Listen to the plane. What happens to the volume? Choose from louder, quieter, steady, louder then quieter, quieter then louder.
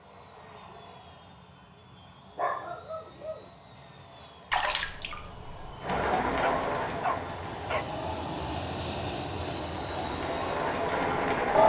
louder.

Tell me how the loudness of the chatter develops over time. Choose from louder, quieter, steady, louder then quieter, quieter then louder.
quieter then louder.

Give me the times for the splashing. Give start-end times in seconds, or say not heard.
4.5-5.8.